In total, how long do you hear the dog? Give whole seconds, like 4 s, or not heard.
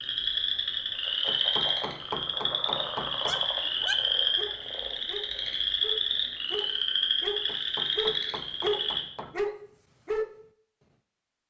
7 s.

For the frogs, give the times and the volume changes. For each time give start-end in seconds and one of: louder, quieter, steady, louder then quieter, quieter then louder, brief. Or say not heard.
0.0-9.1 steady.